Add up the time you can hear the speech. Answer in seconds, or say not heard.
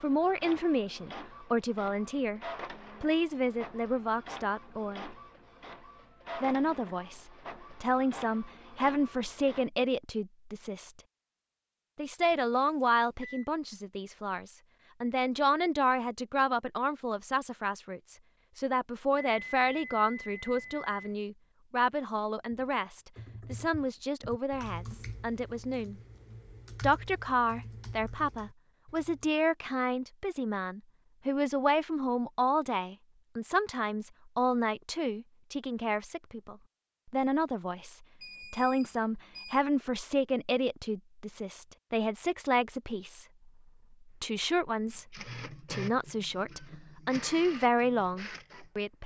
44 s.